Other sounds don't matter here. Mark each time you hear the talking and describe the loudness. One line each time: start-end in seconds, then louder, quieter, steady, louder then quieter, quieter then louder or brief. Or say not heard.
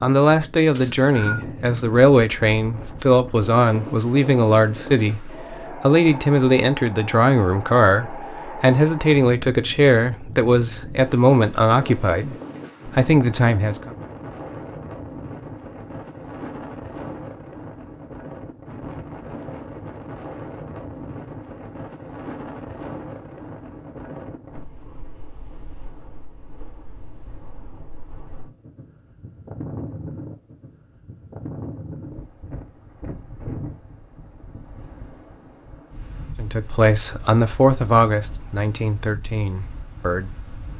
0.0-13.9 steady
36.4-40.5 quieter.